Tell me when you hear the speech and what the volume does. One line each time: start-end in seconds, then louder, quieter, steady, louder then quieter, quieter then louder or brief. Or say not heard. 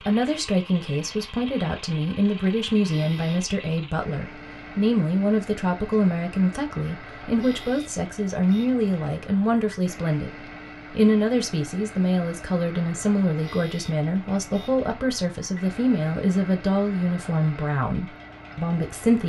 0.1-19.2 steady.